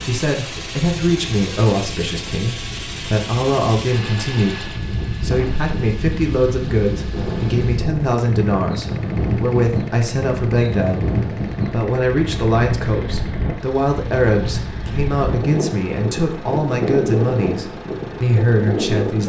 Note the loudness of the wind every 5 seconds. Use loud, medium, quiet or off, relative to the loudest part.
medium, loud, loud, loud.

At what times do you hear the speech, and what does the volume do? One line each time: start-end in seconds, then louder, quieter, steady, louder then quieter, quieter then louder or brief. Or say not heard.
0.0-19.2 steady.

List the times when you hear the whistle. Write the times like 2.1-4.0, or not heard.
not heard.